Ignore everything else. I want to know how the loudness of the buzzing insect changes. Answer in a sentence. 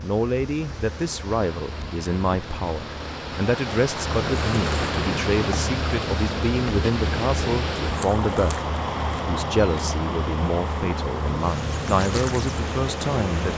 The loudness of the buzzing insect goes up.